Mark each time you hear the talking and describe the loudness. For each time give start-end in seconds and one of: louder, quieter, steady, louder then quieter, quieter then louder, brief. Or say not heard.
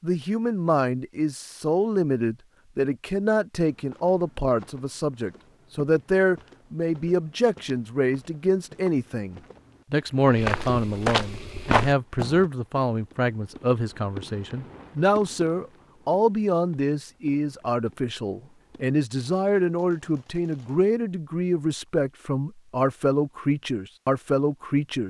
0.0-25.0 steady.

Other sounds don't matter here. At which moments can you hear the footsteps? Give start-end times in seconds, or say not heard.
3.6-12.4.